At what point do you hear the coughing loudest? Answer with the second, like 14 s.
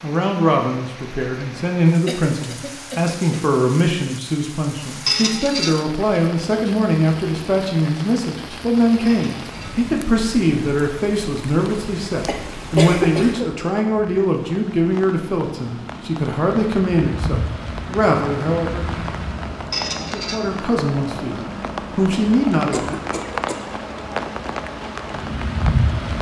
13 s.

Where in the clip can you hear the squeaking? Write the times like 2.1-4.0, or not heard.
5.0-5.8, 9.1-9.7, 19.7-20.4.